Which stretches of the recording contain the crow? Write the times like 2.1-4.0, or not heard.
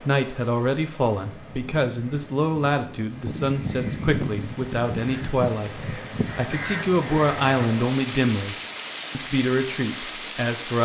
1.1-7.5.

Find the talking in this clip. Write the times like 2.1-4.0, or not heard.
0.1-10.8.